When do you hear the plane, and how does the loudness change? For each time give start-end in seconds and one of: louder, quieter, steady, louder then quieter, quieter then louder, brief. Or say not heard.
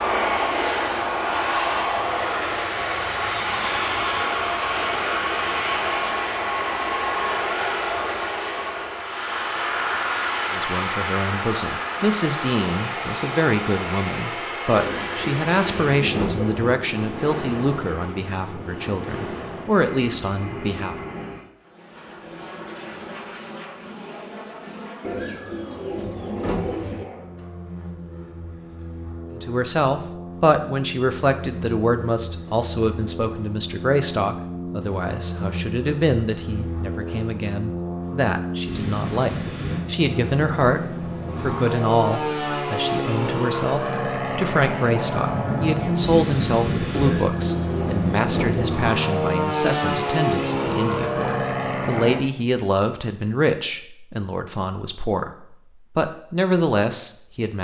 0.0-52.2 quieter then louder.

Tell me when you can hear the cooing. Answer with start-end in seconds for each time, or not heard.
14.8-16.8, 25.0-27.1, 47.0-48.9.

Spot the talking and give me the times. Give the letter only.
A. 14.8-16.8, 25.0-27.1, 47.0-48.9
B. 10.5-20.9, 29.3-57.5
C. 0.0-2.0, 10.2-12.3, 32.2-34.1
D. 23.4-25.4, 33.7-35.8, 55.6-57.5
B.